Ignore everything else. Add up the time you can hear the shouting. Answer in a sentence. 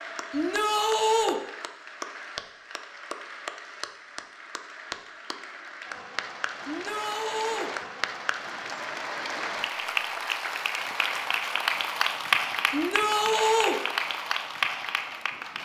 The shouting can be heard for 3 seconds in total.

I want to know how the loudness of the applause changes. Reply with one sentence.
The loudness of the applause goes up.